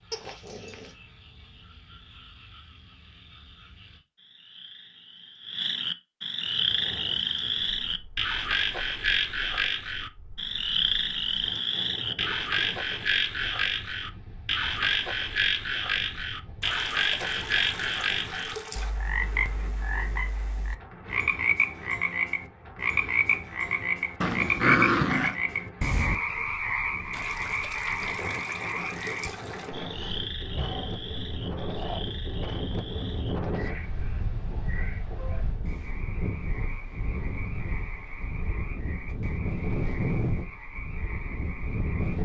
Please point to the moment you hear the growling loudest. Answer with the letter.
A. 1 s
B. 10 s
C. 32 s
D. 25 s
D.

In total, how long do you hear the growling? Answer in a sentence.
The growling can be heard for 4 seconds in total.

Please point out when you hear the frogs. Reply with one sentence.
You can hear the frogs from 0.0 to 42.2 s.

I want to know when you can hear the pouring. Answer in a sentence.
The pouring can be heard from 16.6 to 18.9 s and from 27.1 to 29.7 s.